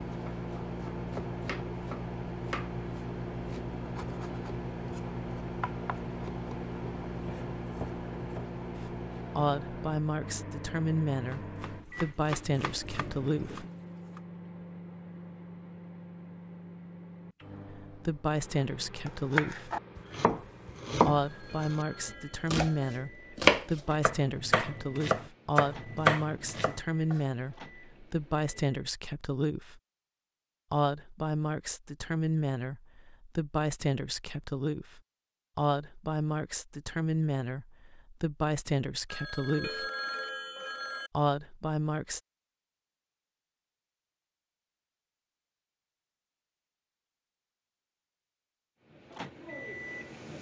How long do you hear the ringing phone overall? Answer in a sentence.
You can hear the ringing phone for 4 seconds altogether.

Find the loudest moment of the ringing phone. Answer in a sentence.
The volume of the ringing phone peaks at 40 seconds.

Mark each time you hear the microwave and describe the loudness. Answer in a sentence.
You can hear the microwave from 0.0 to 28.8 s, getting quieter; and briefly from 48.8 to 50.3 s.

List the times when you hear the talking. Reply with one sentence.
You can hear the talking from 8.8 to 13.7 s, from 17.8 to 19.7 s, from 21.0 to 29.8 s, from 30.7 to 39.9 s and from 41.1 to 42.2 s.